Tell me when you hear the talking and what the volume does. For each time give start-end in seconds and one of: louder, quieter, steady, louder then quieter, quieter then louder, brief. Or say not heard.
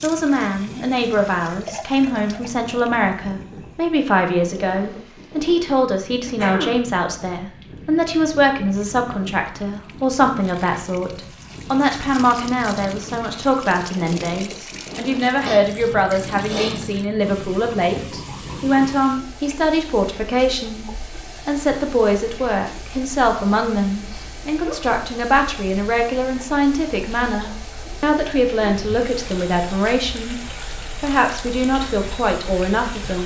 0.0-33.2 steady.